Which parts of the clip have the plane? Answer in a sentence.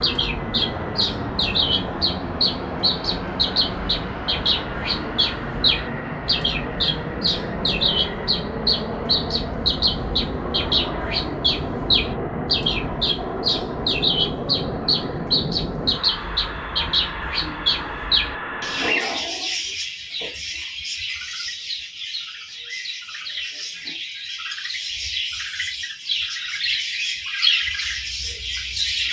The plane can be heard from 0.0 to 18.9 s.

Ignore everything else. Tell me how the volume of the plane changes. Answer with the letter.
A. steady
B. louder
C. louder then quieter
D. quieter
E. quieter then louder
A.